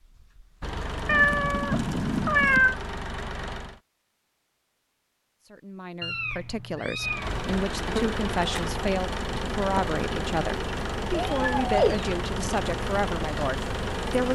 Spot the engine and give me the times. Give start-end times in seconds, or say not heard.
0.0-3.8, 7.0-14.3.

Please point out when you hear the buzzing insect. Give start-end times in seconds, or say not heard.
7.3-14.3.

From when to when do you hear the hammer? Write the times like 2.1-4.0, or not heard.
not heard.